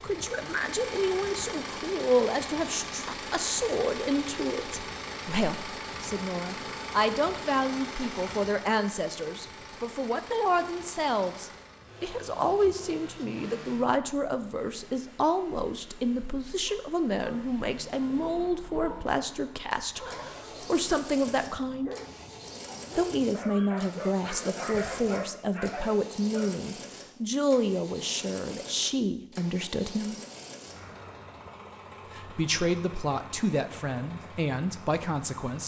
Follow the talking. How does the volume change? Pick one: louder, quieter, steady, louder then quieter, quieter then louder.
steady.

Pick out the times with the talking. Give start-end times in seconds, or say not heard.
0.0-21.9, 22.9-30.2, 32.1-35.6.